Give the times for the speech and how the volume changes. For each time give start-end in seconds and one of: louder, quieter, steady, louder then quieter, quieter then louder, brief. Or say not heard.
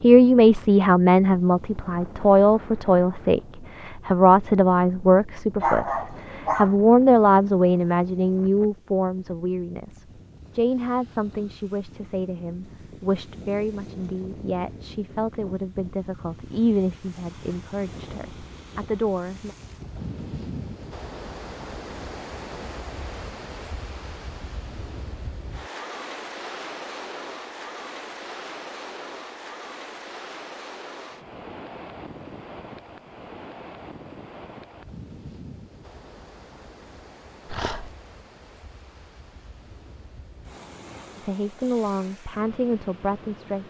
0.0-19.6 quieter
41.1-43.6 brief.